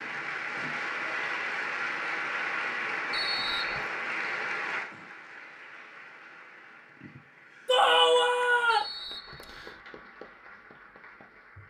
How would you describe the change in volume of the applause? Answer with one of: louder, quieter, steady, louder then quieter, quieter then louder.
quieter.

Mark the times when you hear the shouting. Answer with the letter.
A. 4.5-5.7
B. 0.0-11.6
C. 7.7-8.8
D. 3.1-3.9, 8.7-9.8
C.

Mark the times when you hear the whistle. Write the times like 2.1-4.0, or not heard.
3.1-3.9, 8.7-9.8.